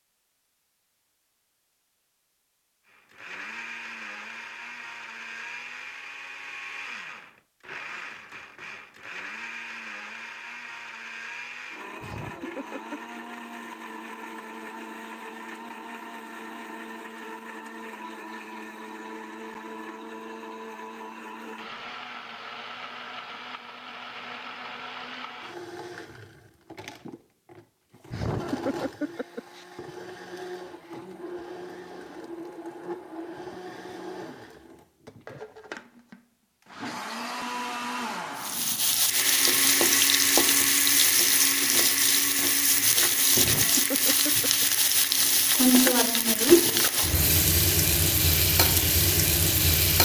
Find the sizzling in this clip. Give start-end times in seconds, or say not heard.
38.4-50.0.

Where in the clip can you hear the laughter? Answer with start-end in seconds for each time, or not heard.
12.0-13.0, 28.1-29.6, 43.4-44.6.